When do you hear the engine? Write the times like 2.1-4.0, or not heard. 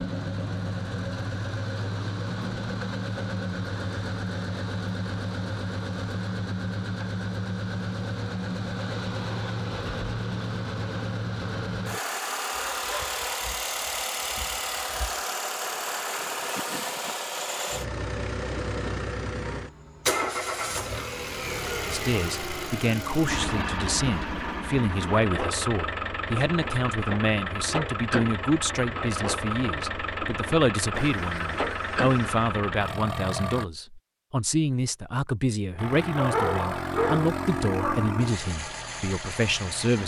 0.0-33.6, 35.8-40.0.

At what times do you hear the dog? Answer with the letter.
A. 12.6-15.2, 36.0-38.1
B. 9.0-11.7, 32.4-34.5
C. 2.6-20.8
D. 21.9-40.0
A.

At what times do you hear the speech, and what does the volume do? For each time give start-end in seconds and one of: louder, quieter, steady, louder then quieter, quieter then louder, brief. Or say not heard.
21.9-40.0 steady.